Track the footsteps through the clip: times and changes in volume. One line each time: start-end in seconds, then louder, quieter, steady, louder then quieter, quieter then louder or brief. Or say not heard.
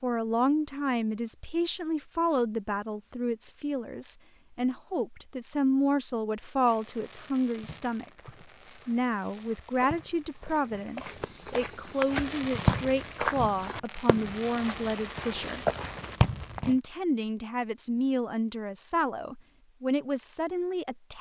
8.2-16.2 louder.